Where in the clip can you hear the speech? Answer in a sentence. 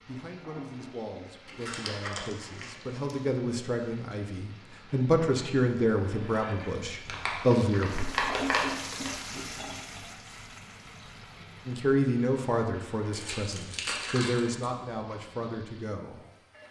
The speech can be heard from 0.1 to 8.1 s and from 11.7 to 16.6 s.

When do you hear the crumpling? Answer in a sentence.
You can hear the crumpling from 1.4 to 3.1 s, from 7.0 to 9.2 s and from 13.1 to 14.7 s.